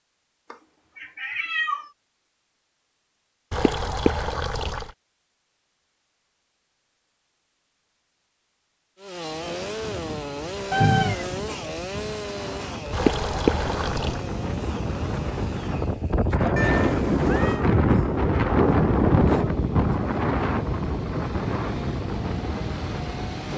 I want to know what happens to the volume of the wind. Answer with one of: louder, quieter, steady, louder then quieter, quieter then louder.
louder then quieter.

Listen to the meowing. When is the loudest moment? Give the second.
11 s.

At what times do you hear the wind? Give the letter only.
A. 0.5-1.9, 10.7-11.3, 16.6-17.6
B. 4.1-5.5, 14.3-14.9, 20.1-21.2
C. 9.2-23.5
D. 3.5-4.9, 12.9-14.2
C.